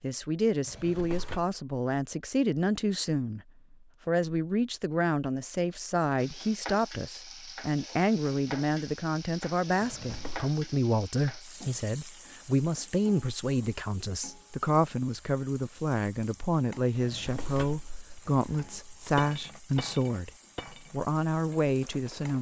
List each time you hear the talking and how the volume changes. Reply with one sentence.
The talking can be heard from 0.0 to 22.3 s, at a steady volume.